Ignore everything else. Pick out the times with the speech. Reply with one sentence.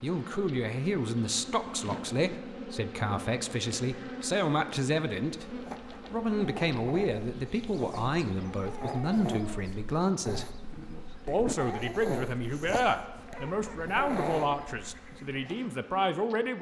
The speech can be heard from 0.0 to 5.5 s, from 6.1 to 10.6 s and from 11.2 to 16.5 s.